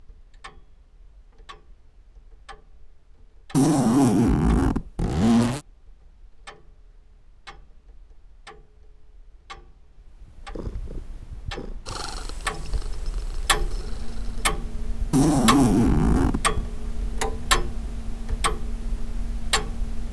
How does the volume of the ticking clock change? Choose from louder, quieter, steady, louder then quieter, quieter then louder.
louder.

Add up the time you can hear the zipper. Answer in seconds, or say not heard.
4 s.